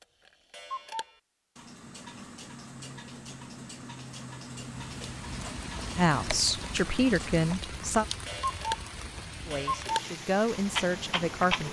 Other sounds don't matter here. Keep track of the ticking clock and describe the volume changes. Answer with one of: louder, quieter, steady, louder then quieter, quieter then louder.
louder.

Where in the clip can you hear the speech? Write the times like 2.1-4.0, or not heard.
6.0-8.1, 9.4-11.6.